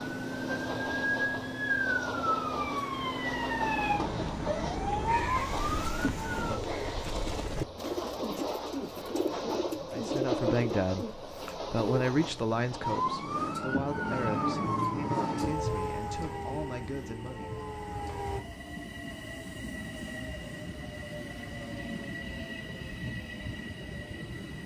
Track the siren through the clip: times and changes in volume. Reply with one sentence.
The siren can be heard from 0.0 to 6.6 s, at a steady volume; and from 12.8 to 18.4 s, getting quieter.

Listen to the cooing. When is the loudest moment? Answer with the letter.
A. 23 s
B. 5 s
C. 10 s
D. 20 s
C.